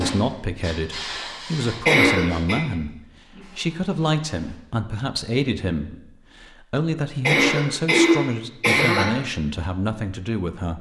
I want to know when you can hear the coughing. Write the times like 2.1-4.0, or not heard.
1.9-2.6, 7.2-9.2.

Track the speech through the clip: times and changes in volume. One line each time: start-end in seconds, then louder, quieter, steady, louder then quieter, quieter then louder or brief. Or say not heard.
0.0-10.7 steady.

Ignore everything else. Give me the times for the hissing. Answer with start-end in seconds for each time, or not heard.
0.0-4.6.